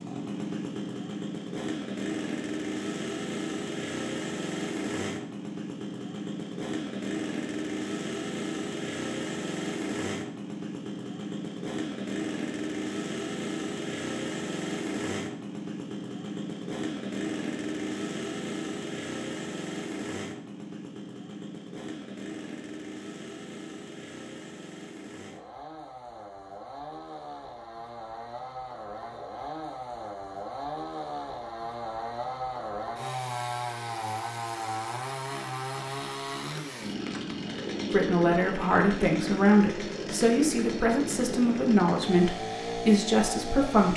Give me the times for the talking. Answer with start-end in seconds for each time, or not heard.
37.9-43.9.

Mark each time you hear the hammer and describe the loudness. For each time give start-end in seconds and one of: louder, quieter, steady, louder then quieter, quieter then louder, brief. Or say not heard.
not heard.